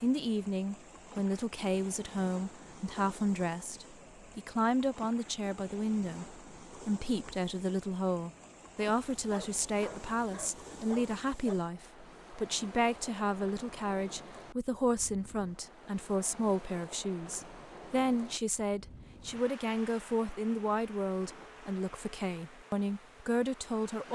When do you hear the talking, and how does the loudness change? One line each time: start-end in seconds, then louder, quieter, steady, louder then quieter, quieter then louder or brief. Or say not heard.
0.0-24.1 steady.